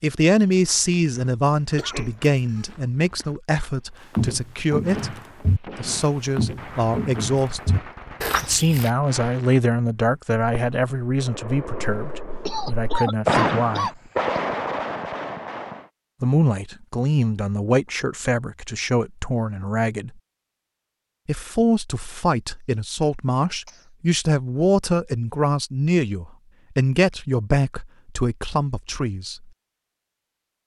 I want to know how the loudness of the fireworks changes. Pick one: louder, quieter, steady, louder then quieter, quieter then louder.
louder.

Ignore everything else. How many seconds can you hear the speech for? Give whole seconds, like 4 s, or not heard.
26 s.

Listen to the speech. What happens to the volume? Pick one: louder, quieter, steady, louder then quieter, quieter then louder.
steady.